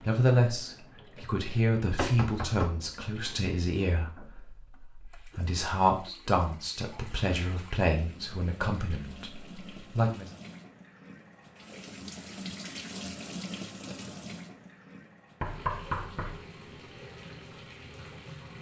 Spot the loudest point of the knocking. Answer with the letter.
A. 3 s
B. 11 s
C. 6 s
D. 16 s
D.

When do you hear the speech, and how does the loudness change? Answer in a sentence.
The speech can be heard from 0.0 to 10.3 s, getting quieter.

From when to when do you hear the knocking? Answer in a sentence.
The knocking can be heard from 2.0 to 2.7 s and from 15.4 to 16.4 s.